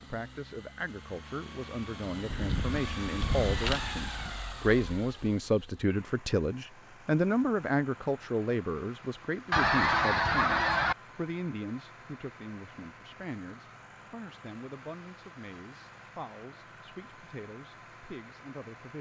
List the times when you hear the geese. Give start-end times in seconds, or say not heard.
2.3-4.3, 9.5-10.9.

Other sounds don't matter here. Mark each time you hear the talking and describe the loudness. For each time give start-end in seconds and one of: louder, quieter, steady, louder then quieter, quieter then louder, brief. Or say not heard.
0.0-18.9 louder then quieter.